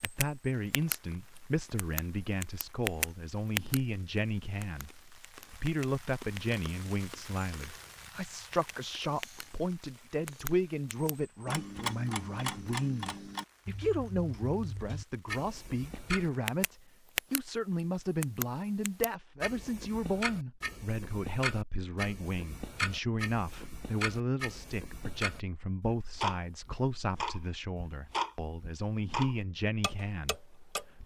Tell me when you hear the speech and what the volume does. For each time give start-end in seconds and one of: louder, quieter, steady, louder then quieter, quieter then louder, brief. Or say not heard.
0.0-31.0 steady.